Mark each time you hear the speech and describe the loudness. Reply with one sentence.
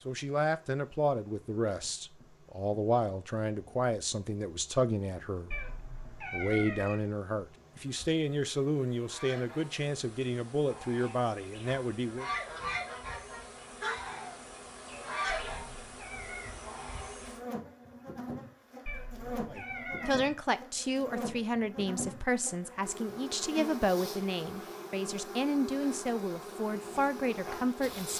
You can hear the speech from 0.1 to 12.3 s, at a steady volume; and from 19.5 to 28.1 s, at a steady volume.